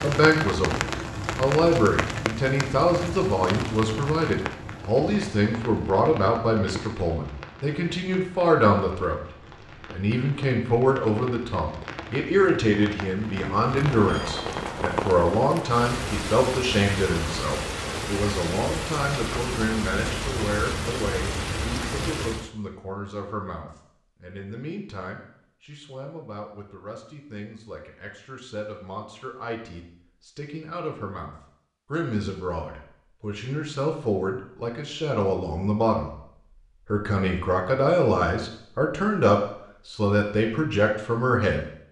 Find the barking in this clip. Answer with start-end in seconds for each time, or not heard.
not heard.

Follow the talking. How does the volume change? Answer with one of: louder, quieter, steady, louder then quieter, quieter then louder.
quieter then louder.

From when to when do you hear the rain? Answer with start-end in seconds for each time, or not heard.
0.0-22.5.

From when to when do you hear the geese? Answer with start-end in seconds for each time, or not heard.
not heard.